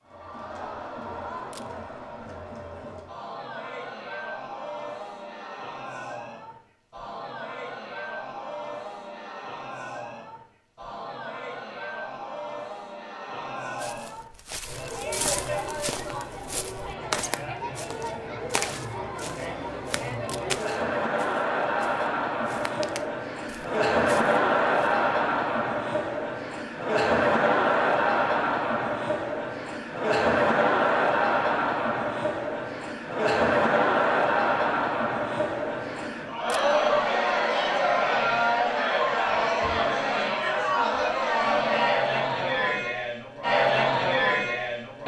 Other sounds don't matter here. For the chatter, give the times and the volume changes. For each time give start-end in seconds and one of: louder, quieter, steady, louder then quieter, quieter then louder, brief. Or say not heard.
0.0-45.0 louder.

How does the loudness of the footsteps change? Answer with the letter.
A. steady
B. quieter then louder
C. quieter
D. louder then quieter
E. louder
C.